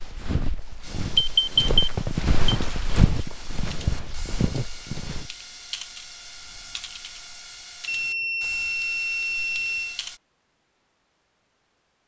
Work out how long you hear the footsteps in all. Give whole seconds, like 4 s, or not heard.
5 s.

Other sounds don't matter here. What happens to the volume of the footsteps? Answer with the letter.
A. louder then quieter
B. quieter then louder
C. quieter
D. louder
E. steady
A.